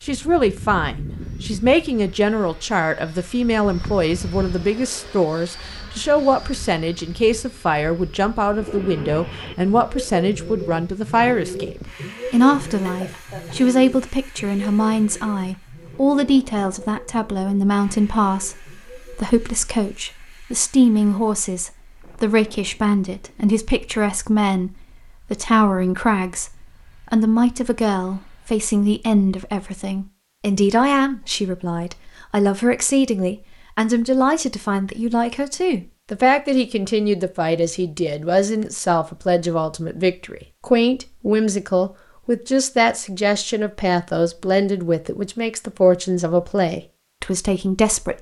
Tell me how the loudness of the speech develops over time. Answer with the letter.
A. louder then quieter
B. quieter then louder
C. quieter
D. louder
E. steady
E.